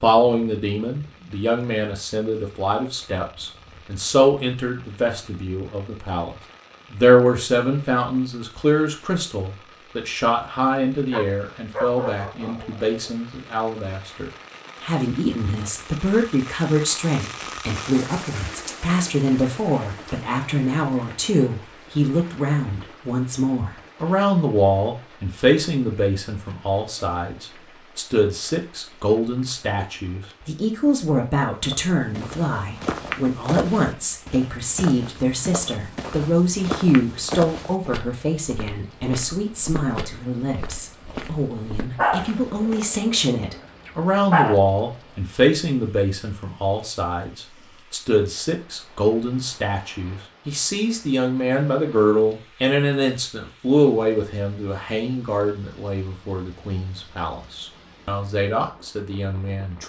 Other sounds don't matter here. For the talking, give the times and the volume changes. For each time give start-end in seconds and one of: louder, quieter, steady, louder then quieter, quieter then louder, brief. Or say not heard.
0.0-59.8 steady.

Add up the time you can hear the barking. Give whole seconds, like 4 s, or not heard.
5 s.